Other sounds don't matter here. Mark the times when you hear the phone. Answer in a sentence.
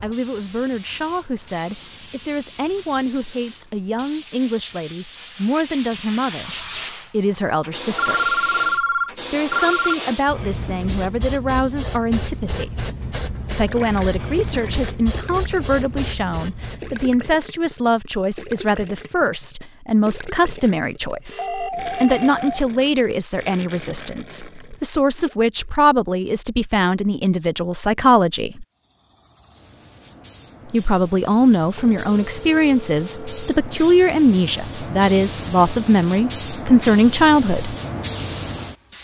The phone can be heard from 8.0 to 9.9 s, from 21.1 to 22.6 s and from 31.8 to 33.6 s.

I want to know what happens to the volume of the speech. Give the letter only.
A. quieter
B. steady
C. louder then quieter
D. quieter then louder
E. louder
E.